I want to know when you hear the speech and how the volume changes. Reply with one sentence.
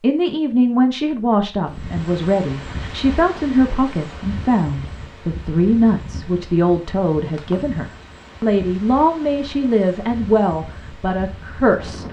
You can hear the speech from 0.0 to 12.0 s, at a steady volume.